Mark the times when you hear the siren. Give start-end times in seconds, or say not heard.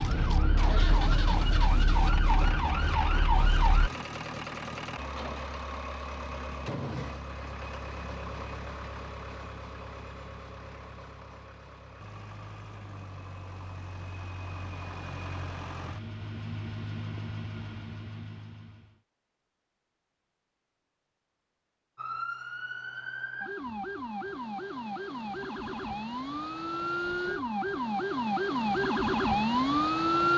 0.0-3.9, 21.9-30.3.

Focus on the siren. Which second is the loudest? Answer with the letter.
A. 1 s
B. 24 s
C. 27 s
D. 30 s
D.